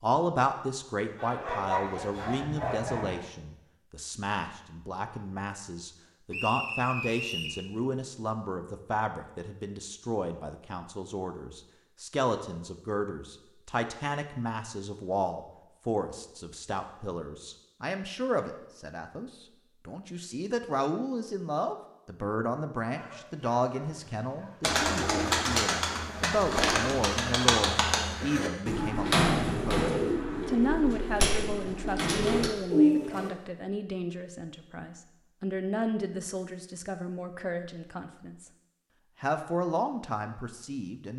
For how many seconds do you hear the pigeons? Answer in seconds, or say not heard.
9 s.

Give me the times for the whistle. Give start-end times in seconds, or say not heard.
6.3-7.6.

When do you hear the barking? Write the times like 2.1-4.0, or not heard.
1.1-3.2, 22.9-24.8.